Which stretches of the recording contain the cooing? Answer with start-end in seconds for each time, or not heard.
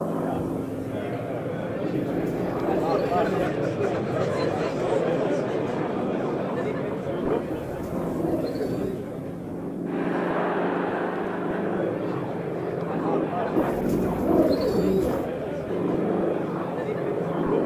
1.9-3.5, 7.7-9.0, 13.6-15.3.